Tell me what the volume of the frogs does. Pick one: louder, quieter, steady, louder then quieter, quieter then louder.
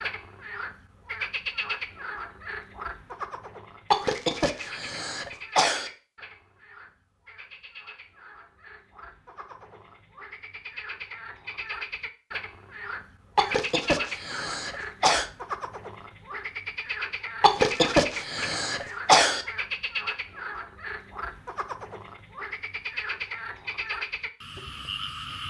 quieter then louder.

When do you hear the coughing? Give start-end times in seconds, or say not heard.
3.9-5.9, 13.3-15.2, 17.4-19.4.